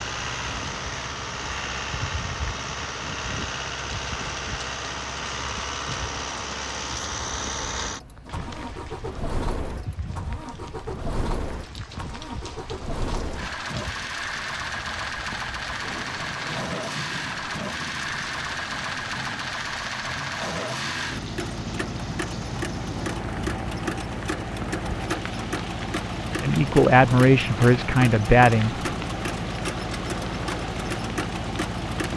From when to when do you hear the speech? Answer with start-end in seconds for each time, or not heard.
26.4-28.8.